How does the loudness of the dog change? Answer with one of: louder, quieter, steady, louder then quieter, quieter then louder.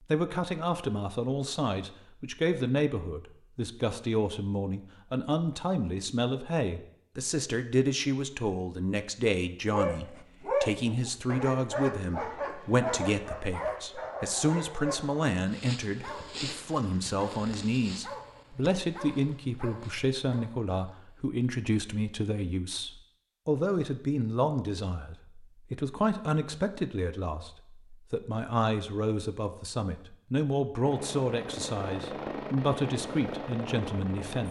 quieter.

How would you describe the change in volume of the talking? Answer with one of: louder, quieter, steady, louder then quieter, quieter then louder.
steady.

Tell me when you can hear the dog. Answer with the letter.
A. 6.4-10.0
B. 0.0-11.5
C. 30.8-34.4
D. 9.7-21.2
D.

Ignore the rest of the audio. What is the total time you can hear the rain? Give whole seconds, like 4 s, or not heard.
not heard.